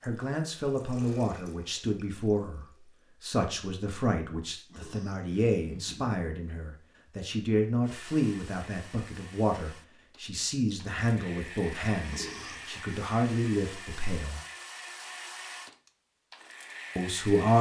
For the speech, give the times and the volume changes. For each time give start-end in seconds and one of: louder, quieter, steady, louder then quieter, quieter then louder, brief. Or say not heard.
0.0-14.4 steady
16.9-17.5 brief.